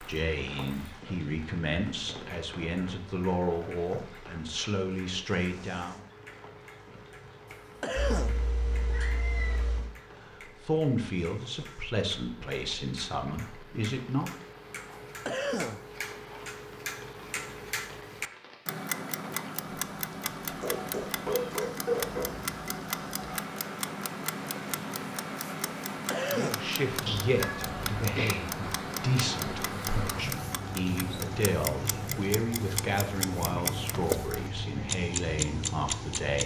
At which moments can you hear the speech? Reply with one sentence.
The speech can be heard from 0.0 to 6.0 s, from 10.3 to 14.3 s and from 26.3 to 36.4 s.